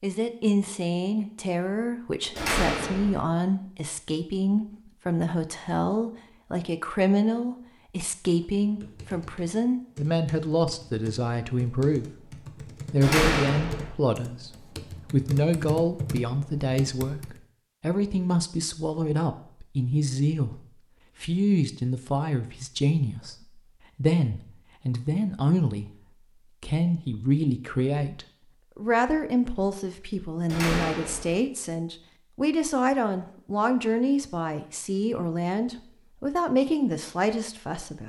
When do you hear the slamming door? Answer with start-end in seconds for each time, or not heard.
2.4-3.2, 13.0-13.9, 30.4-31.4.